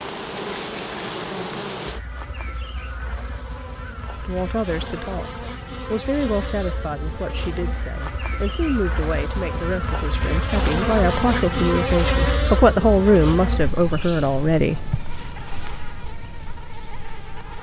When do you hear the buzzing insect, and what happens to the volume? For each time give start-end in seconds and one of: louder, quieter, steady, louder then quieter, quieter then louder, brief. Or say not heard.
0.0-17.5 louder then quieter.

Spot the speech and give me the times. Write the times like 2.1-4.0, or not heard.
4.2-14.8.